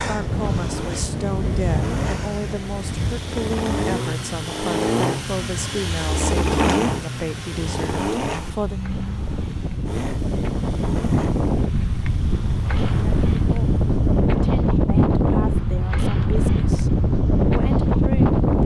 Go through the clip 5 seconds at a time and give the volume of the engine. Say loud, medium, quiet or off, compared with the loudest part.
loud, loud, quiet, off.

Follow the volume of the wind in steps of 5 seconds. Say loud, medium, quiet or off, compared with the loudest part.
medium, quiet, loud, loud.